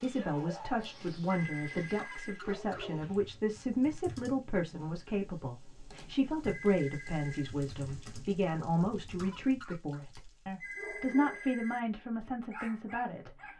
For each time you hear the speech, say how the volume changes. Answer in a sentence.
The speech can be heard from 0.0 to 13.3 s, at a steady volume.